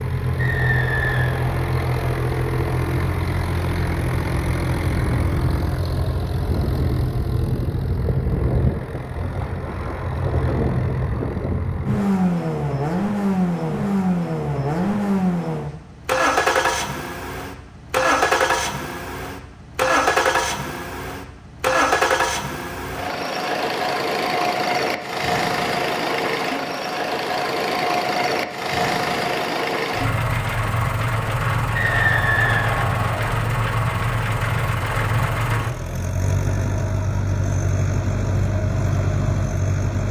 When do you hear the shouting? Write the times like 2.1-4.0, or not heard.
not heard.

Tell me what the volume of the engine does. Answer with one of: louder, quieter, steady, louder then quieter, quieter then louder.
steady.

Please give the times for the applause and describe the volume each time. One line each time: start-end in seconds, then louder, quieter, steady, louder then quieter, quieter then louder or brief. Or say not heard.
not heard.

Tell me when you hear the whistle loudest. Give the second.
32 s.